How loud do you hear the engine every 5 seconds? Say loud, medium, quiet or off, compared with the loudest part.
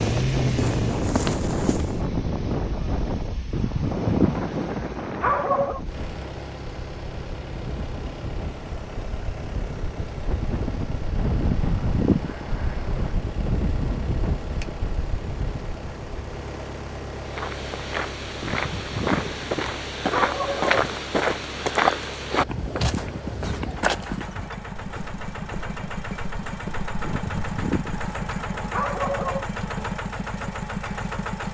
loud, medium, medium, medium, medium, loud, loud.